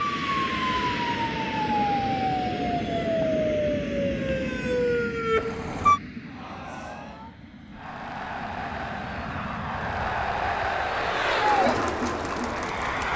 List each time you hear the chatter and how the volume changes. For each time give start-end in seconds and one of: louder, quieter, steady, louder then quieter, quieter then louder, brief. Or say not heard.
6.2-13.1 louder.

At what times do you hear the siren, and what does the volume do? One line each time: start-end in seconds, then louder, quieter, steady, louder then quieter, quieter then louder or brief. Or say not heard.
0.0-6.0 steady.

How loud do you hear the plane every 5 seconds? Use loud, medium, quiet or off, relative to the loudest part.
loud, medium, loud.